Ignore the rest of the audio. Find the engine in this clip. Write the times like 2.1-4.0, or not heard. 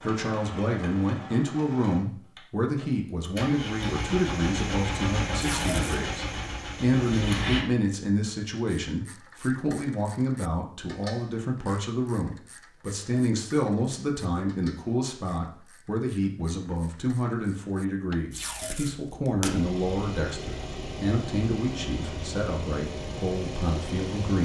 0.0-7.7, 19.4-24.4.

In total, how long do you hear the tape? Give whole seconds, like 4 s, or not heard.
2 s.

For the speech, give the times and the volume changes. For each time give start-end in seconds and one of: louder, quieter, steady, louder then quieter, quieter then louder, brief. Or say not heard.
0.0-24.4 steady.